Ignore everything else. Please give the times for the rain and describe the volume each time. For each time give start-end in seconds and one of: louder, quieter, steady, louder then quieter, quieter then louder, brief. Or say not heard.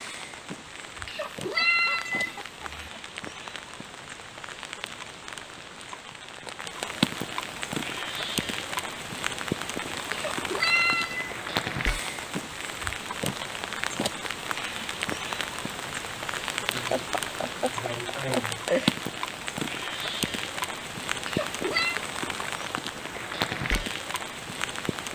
0.0-25.1 louder.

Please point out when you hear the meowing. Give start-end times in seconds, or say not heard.
1.1-2.9, 10.1-11.3, 21.2-22.0.